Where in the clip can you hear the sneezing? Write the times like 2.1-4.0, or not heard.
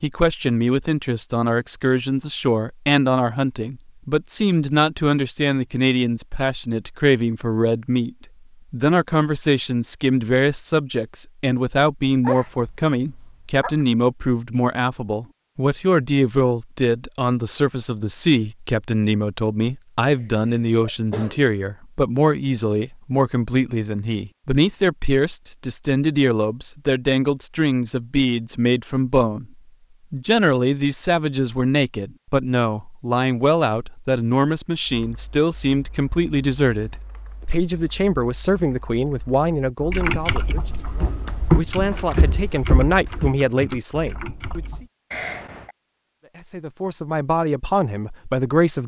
12.1-13.8, 20.1-21.4, 45.1-45.8.